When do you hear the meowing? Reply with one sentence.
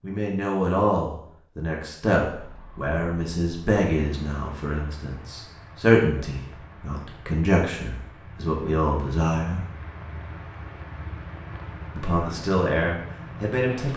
You can't hear the meowing here.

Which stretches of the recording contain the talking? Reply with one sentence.
The talking can be heard from 0.0 to 9.6 s and from 11.9 to 13.9 s.